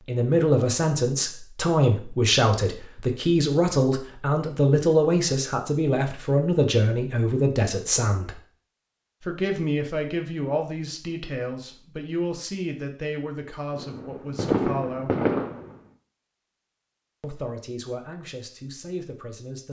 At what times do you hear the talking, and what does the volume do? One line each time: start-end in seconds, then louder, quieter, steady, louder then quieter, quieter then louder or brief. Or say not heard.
0.1-8.4 steady
9.2-15.2 quieter
17.2-19.6 brief.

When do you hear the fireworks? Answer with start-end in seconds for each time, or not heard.
13.8-15.8.